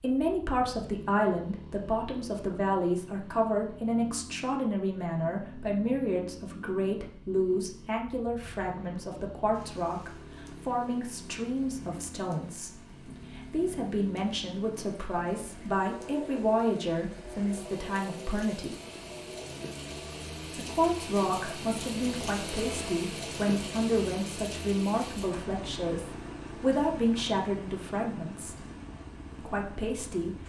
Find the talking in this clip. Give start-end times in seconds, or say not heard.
0.0-18.8, 20.6-28.6, 29.4-30.4.